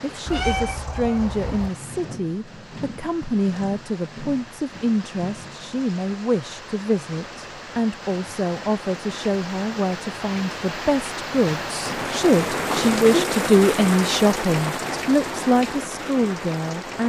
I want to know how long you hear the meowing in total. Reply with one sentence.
The meowing can be heard for 2 seconds in total.